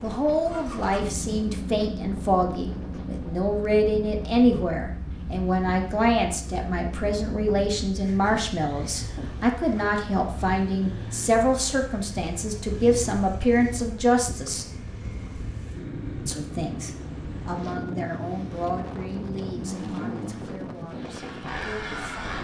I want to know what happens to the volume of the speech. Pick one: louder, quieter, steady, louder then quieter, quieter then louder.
quieter.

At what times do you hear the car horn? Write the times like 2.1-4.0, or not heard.
not heard.